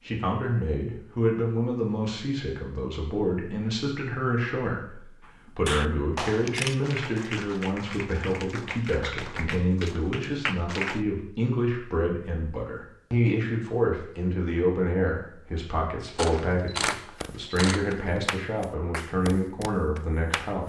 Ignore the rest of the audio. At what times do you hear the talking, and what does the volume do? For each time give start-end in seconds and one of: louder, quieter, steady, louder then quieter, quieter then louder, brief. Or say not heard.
0.1-20.6 steady.